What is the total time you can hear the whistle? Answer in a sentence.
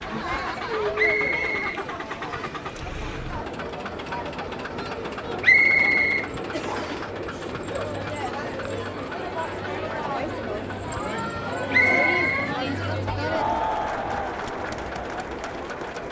You can hear the whistle for 4 seconds altogether.